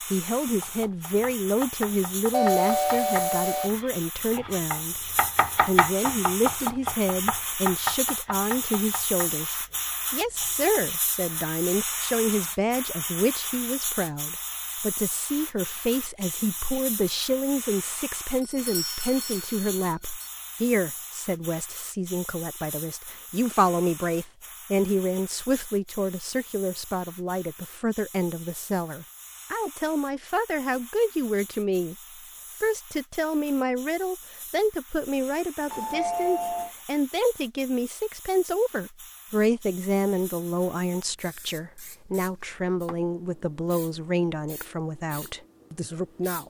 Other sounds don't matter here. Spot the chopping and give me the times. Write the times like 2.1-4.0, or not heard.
0.6-10.8.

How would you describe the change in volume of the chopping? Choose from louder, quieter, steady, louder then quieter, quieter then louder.
louder then quieter.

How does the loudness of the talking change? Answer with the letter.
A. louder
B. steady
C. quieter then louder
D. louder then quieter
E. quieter
B.